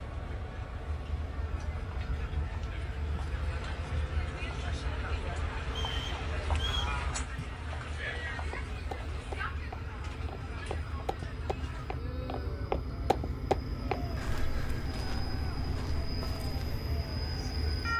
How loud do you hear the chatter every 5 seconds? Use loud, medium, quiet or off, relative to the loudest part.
medium, loud, medium, medium.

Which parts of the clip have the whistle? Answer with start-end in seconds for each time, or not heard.
5.7-7.0.